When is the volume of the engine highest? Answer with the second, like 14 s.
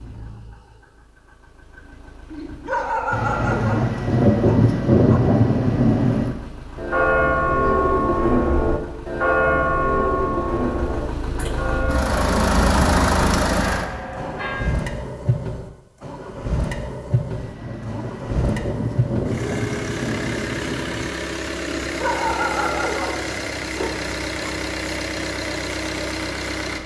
13 s.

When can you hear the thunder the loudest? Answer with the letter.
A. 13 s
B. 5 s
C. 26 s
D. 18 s
B.